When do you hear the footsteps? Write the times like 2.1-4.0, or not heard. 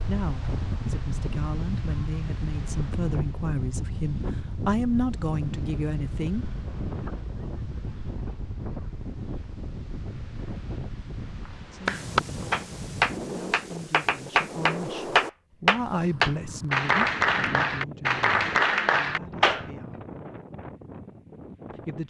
not heard.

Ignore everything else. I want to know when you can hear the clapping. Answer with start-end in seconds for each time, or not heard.
11.8-19.6.